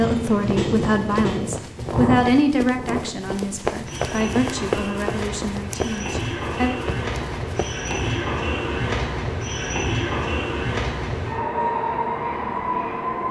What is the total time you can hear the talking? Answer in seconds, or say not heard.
7 s.